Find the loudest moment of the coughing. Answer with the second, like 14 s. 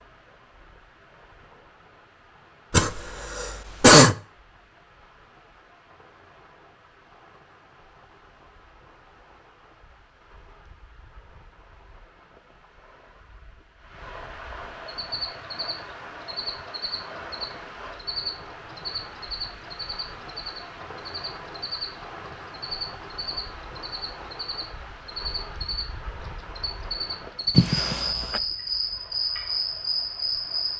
4 s.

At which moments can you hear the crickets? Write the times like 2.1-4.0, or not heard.
14.9-30.7.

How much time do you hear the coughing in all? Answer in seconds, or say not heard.
2 s.